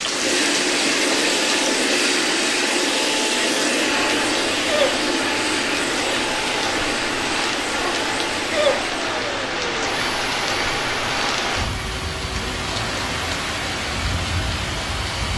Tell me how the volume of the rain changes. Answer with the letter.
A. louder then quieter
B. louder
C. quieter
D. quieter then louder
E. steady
E.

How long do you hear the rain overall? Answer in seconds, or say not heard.
15 s.